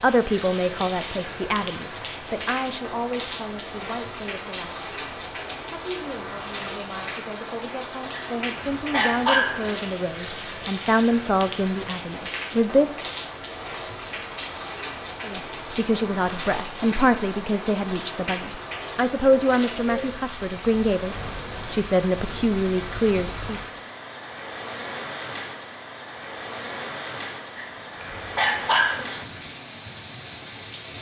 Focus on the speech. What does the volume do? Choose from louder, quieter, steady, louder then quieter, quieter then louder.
quieter then louder.